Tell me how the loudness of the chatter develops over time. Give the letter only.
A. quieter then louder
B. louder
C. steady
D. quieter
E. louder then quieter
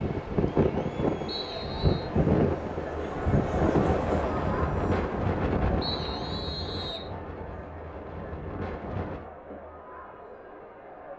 E.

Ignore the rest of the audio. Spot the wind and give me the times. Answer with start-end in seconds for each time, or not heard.
0.0-9.2.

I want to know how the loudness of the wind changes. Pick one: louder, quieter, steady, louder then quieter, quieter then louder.
quieter.